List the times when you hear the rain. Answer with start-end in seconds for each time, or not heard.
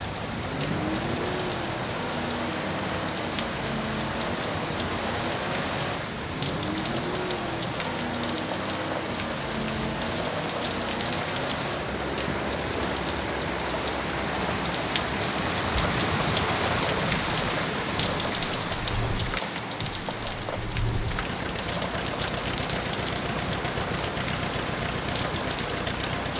0.0-26.3.